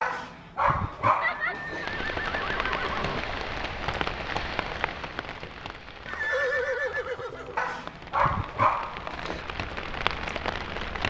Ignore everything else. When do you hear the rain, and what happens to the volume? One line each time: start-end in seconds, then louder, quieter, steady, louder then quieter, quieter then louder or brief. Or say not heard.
1.8-11.0 quieter then louder.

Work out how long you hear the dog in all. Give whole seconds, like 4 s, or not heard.
4 s.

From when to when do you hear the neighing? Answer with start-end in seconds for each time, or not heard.
1.2-3.2, 6.0-7.6.